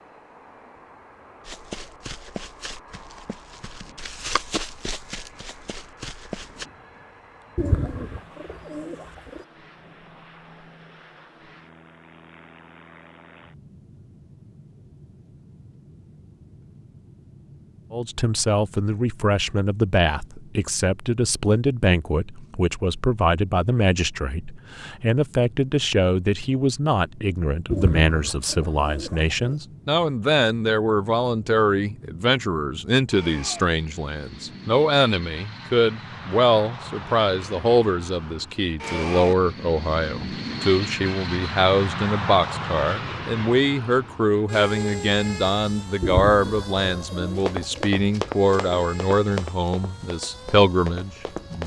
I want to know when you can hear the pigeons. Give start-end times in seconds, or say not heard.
7.5-9.4, 27.7-29.6, 46.0-47.9.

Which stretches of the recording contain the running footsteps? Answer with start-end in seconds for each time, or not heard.
1.4-6.7, 47.4-51.6.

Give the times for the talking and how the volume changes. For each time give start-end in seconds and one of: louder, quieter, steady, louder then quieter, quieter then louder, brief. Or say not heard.
17.9-51.6 steady.